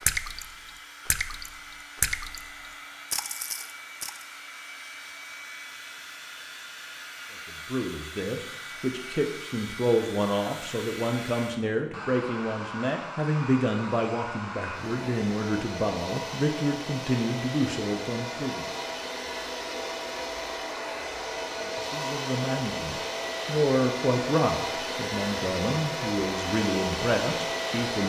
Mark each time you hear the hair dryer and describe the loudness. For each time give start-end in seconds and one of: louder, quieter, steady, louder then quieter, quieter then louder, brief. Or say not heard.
0.0-28.0 louder.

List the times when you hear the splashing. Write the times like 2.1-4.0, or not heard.
0.0-2.5, 3.1-4.2.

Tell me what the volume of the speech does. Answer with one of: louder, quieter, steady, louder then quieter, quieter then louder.
steady.